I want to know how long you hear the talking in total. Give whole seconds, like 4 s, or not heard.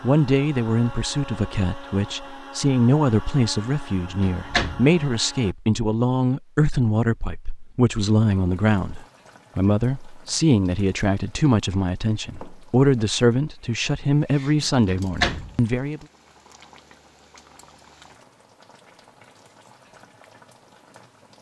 16 s.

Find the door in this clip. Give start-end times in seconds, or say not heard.
4.2-4.9, 14.6-15.6.